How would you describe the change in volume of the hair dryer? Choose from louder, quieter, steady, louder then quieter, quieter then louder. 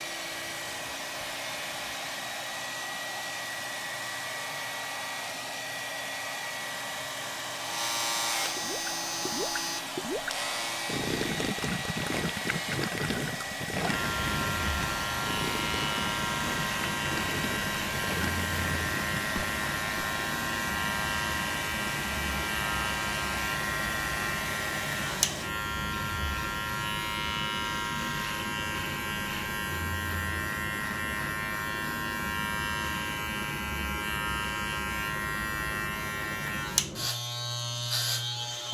steady.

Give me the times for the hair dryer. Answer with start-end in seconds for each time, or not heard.
0.0-25.6.